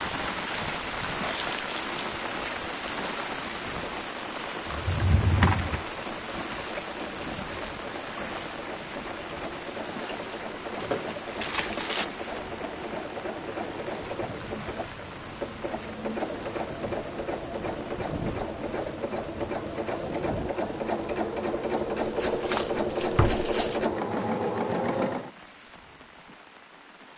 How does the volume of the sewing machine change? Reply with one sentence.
The loudness of the sewing machine goes up.